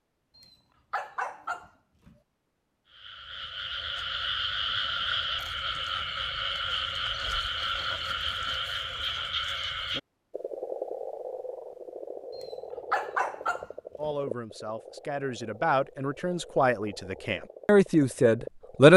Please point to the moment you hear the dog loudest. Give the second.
13 s.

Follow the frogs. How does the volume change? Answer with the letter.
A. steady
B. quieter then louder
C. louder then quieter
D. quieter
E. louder
D.